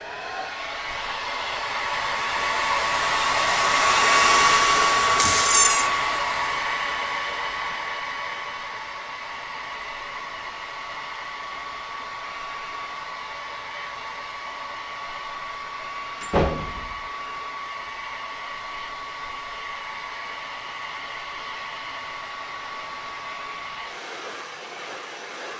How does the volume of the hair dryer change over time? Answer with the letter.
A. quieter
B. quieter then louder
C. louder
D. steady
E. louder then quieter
A.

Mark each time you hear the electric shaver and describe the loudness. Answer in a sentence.
You can't hear the electric shaver here.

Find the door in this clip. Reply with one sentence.
You can hear the door from 5.2 to 5.9 s and from 16.2 to 17.0 s.